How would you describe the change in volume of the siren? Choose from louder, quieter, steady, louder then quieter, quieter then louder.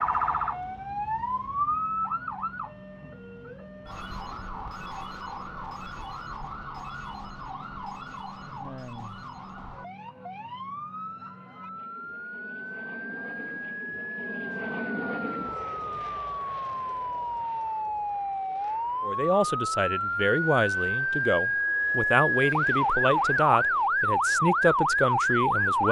quieter then louder.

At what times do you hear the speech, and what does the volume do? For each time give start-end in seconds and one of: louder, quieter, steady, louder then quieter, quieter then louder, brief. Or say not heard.
19.0-25.8 steady.